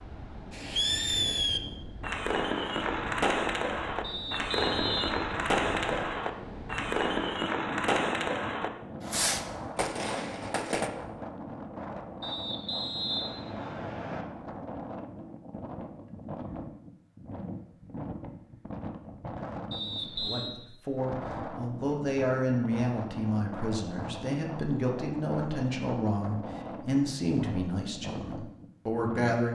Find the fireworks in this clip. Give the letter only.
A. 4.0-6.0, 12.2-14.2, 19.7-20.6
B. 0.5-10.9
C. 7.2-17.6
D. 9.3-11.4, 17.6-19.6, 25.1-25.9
B.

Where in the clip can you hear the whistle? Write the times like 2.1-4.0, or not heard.
4.0-6.0, 12.2-14.2, 19.7-20.6.